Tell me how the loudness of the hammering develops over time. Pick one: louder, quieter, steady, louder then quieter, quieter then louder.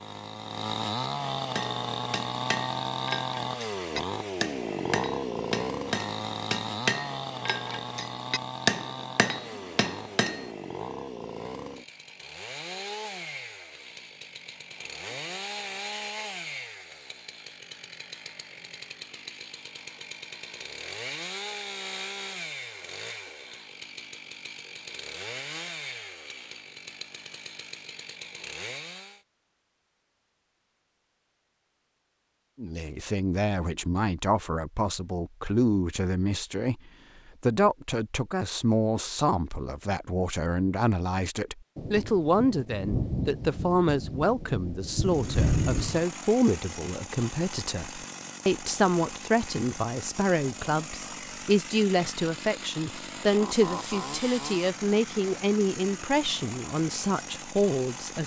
louder.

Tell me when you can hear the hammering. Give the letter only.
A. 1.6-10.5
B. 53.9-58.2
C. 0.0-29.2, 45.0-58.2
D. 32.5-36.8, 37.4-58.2
A.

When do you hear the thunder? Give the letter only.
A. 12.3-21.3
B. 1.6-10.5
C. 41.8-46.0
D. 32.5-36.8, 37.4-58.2
C.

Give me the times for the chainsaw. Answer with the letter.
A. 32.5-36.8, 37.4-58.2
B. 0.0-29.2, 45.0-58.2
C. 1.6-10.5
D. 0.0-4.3
B.